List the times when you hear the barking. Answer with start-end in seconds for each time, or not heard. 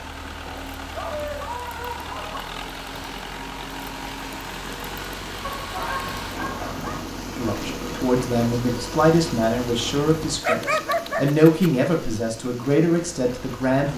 0.5-2.5, 5.4-7.0, 10.4-11.7.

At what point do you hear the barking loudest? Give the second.
11 s.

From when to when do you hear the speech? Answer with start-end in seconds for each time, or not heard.
7.3-13.9.